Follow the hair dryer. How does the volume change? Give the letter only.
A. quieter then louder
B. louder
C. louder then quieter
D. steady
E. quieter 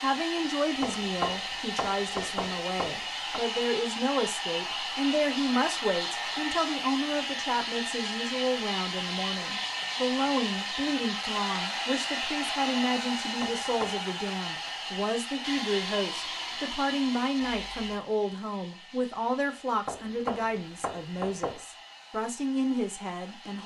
E.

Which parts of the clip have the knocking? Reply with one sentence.
You can hear the knocking from 0.8 to 3.4 s, from 13.4 to 14.0 s and from 19.9 to 21.6 s.